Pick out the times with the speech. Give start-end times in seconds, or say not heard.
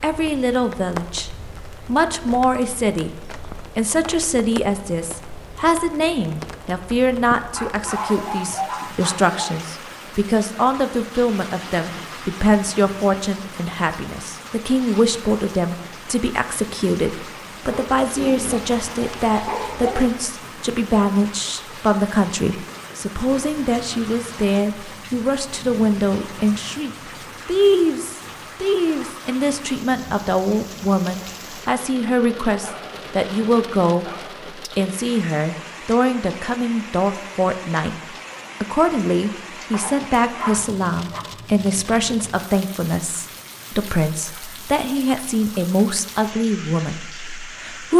0.0-34.0, 34.8-38.0, 38.6-47.9.